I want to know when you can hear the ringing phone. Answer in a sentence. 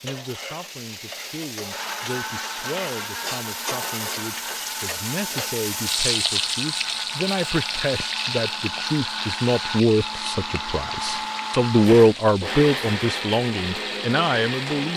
You can't hear the ringing phone here.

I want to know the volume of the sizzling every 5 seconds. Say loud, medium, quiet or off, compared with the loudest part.
medium, loud, medium.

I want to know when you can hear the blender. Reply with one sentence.
The blender can be heard from 1.7 to 14.9 s.